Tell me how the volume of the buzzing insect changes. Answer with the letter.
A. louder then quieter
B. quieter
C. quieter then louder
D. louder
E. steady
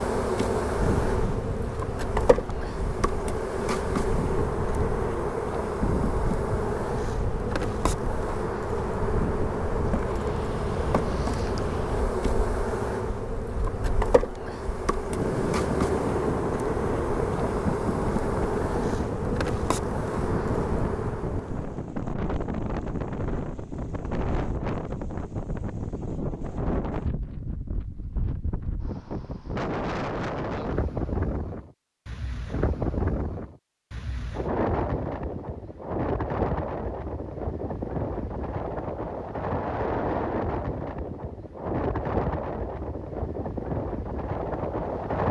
E.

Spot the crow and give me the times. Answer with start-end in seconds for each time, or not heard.
not heard.